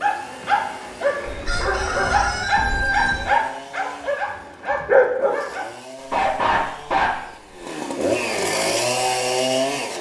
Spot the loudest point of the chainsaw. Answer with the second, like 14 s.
9 s.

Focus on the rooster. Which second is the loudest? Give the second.
3 s.